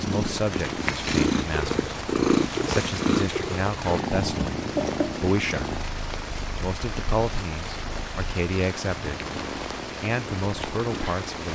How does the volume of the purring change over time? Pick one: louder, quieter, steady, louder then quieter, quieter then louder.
quieter then louder.